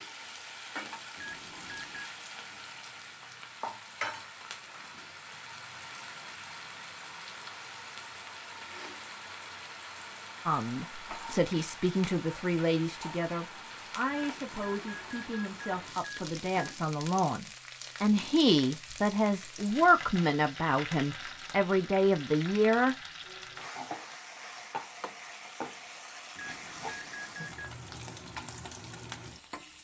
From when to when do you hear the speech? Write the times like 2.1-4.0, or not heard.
10.4-22.9.